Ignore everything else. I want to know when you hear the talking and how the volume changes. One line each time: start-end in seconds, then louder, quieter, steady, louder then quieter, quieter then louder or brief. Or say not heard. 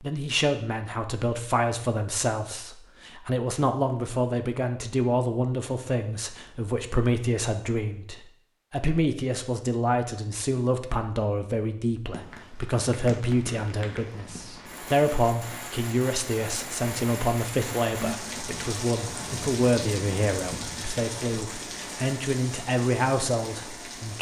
0.0-24.1 steady.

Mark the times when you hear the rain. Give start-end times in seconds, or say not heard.
12.1-24.1.